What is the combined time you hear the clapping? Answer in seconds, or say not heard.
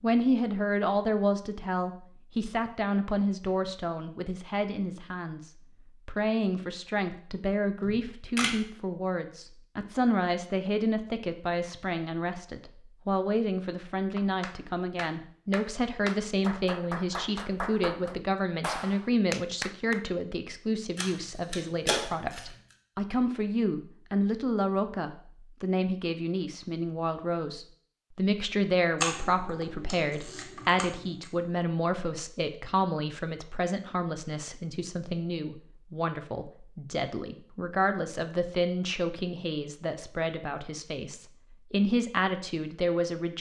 6 s.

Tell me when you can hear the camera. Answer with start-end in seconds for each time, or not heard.
7.8-8.6, 20.9-22.4, 29.0-31.3.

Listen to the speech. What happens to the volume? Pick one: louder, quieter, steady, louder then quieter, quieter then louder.
steady.